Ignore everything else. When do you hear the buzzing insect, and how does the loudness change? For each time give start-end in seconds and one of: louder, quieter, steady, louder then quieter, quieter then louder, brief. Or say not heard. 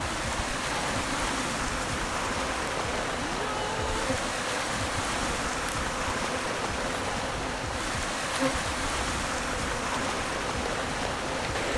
0.0-11.7 steady.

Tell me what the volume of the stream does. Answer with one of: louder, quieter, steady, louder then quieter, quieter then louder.
steady.